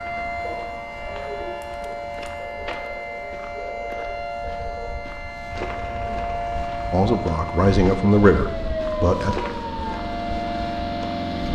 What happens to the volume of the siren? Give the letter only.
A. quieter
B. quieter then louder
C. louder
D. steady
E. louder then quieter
D.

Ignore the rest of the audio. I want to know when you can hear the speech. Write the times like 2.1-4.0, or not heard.
6.9-9.3.